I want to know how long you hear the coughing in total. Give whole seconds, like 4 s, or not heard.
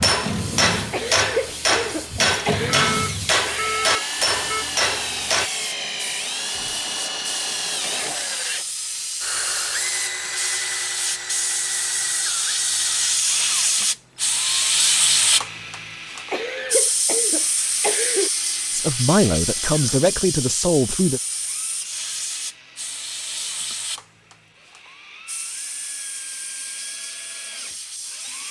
4 s.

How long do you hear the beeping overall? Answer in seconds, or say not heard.
2 s.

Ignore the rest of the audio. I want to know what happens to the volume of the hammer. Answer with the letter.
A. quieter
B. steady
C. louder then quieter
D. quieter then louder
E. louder
B.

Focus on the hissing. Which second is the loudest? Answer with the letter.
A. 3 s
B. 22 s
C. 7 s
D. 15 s
D.